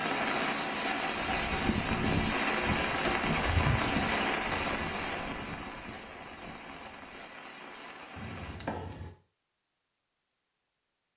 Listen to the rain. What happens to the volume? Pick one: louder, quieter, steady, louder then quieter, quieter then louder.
quieter.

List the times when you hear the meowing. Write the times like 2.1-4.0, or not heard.
not heard.